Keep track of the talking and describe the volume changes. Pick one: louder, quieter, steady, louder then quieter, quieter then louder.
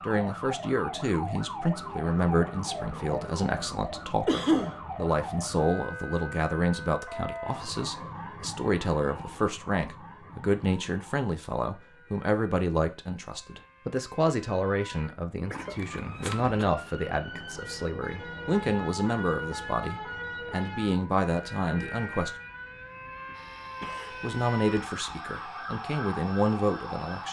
steady.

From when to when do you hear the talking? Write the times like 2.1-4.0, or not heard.
0.0-22.3, 24.1-27.2.